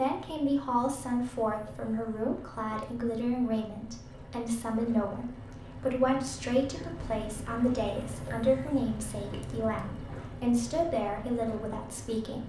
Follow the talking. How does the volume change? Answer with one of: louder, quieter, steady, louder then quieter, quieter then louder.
steady.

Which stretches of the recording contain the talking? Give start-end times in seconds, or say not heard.
0.0-12.4.